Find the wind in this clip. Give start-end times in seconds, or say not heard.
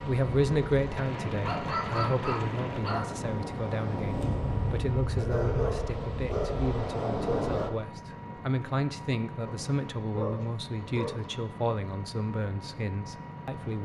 0.0-7.7.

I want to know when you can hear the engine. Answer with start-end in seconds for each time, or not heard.
0.0-13.8.